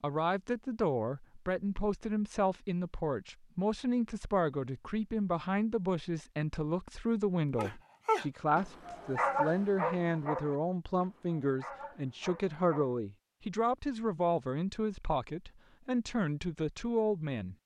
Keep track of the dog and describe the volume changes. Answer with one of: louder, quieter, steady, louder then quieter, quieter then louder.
quieter then louder.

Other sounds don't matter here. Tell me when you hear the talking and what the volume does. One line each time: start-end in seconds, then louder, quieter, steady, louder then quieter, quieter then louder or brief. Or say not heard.
0.0-17.6 steady.